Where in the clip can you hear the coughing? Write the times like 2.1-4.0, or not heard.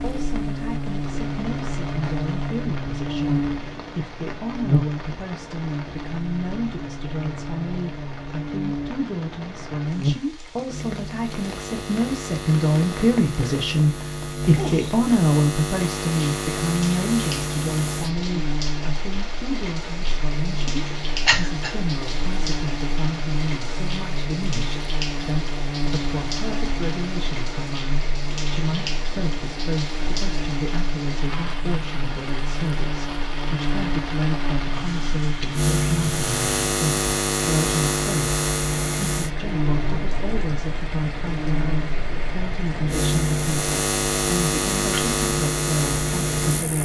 21.2-21.8.